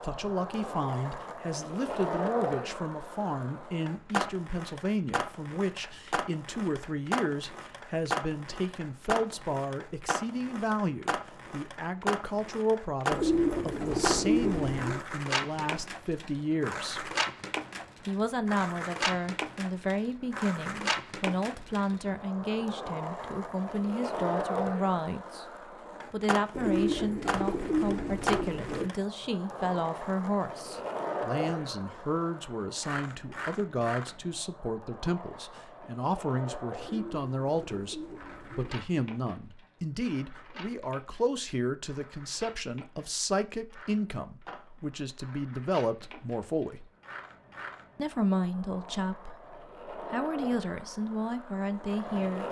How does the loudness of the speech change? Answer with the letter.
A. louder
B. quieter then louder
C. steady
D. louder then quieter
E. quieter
C.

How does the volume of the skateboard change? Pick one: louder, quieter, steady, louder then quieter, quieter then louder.
quieter.